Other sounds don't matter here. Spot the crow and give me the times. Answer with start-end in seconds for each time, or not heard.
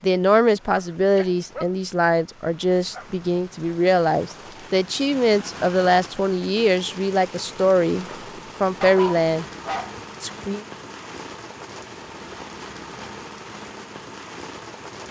not heard.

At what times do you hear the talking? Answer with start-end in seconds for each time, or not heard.
0.0-9.4, 10.2-10.7.